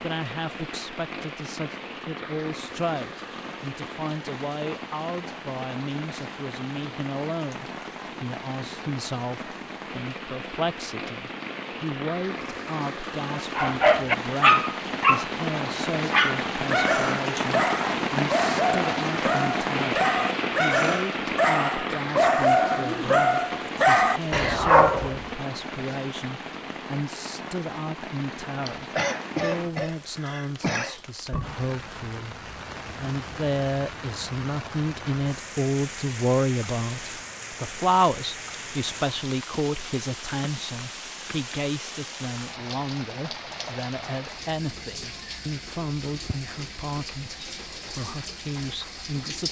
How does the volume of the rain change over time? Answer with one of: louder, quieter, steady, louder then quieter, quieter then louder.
louder then quieter.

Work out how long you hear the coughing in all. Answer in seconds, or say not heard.
2 s.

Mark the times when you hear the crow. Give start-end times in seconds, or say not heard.
not heard.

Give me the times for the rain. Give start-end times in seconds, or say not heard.
0.0-49.4.